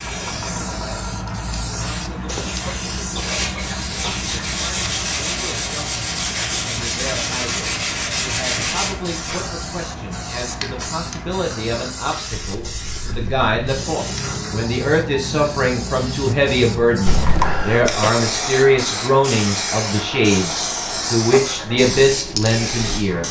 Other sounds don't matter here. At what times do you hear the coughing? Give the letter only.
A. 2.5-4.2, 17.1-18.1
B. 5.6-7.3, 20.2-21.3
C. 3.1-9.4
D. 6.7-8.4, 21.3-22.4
A.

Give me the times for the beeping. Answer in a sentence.
The beeping can't be heard in this clip.